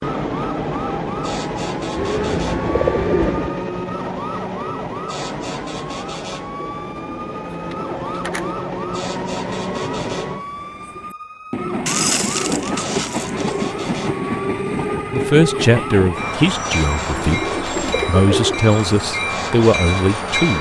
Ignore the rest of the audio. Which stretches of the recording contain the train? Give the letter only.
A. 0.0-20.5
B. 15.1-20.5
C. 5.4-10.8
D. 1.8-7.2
A.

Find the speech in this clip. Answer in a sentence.
You can hear the speech from 15.1 to 20.5 s.